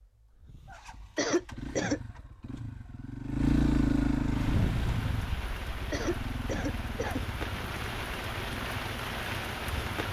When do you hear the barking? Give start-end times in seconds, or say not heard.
not heard.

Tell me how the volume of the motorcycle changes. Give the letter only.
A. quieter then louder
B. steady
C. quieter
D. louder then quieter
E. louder
D.